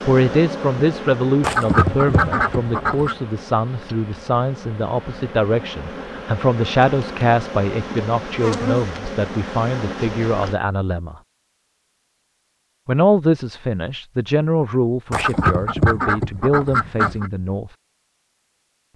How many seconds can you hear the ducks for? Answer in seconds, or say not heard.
4 s.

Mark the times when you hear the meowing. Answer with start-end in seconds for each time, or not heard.
not heard.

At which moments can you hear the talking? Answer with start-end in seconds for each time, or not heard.
0.0-11.2, 12.8-17.7.